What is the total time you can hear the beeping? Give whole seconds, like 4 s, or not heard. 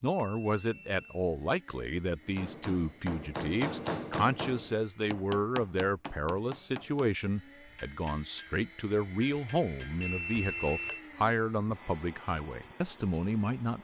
2 s.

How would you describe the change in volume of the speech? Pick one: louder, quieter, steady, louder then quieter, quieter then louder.
steady.